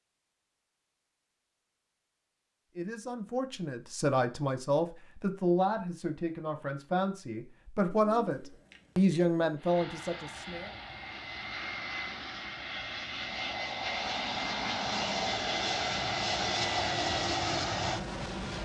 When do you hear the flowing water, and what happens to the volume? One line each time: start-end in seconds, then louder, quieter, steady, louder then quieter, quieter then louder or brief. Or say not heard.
not heard.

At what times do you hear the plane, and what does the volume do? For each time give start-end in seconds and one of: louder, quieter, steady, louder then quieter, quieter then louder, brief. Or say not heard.
9.6-18.6 louder.